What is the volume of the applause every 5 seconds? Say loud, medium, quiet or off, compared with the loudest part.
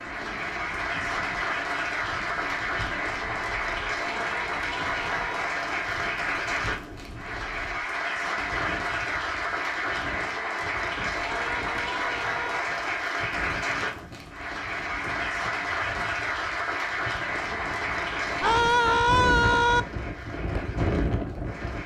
loud, loud, loud, loud, quiet.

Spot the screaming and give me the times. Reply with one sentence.
The screaming can be heard from 4.2 to 5.5 s, from 11.2 to 12.6 s and from 18.4 to 19.8 s.